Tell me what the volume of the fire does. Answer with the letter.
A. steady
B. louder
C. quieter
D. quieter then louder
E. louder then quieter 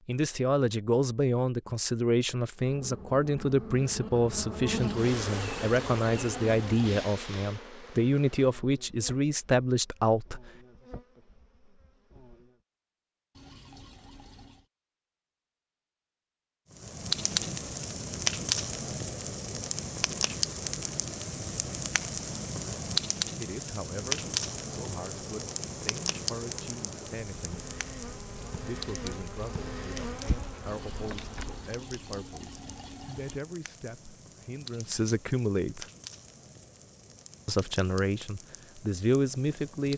C.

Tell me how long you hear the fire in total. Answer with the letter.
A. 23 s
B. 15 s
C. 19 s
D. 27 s
A.